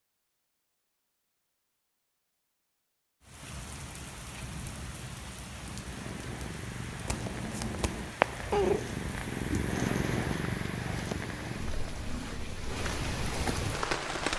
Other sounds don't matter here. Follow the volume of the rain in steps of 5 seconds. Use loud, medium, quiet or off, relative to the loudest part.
medium, medium, loud.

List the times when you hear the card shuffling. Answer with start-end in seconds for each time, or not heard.
7.0-8.2.